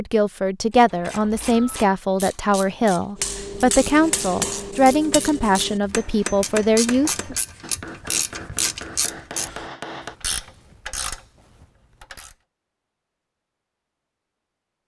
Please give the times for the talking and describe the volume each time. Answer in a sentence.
You can hear the talking from 0.0 to 7.3 s, at a steady volume.